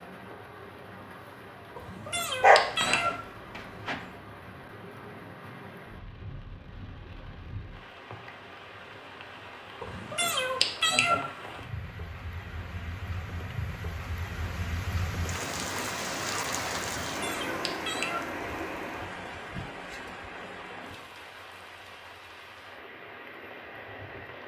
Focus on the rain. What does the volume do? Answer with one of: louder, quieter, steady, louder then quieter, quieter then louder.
louder then quieter.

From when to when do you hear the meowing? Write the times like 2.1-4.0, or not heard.
1.8-3.1, 9.8-11.2, 17.1-18.2.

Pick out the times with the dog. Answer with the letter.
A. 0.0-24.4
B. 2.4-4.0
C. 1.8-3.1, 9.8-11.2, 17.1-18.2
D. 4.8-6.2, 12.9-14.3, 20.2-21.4
B.